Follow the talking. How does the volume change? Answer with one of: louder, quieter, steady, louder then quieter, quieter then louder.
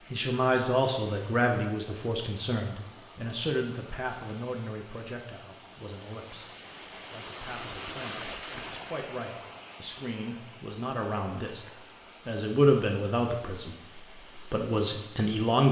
quieter then louder.